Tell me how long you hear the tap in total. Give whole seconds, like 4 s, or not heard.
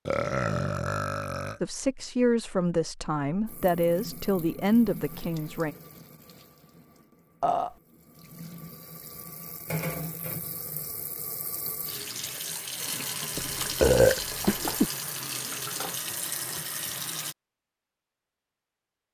14 s.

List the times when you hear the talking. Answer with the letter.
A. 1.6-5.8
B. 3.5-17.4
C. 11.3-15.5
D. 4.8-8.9
A.